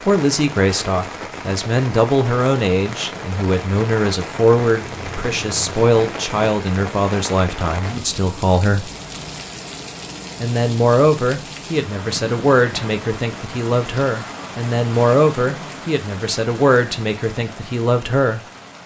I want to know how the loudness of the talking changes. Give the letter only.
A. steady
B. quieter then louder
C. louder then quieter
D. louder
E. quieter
A.